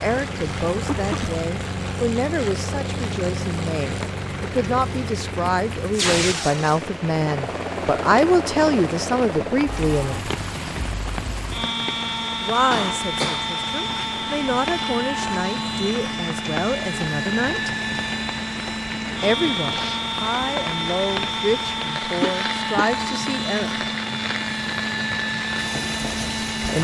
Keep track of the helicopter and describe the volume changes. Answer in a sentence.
The loudness of the helicopter stays about the same.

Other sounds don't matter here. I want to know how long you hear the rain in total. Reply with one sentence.
You can hear the rain for 27 seconds altogether.